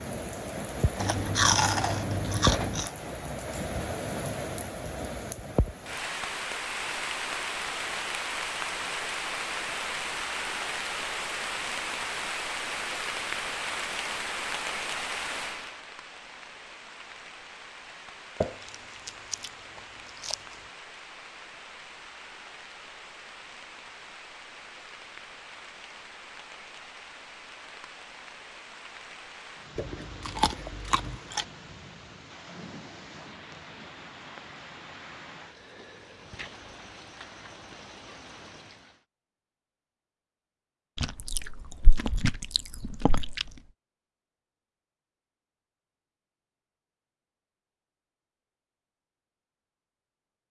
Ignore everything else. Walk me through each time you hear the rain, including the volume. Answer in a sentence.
The rain can be heard from 0.0 to 39.0 s, getting quieter.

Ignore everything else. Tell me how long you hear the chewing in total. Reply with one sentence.
The chewing can be heard for 8 seconds in total.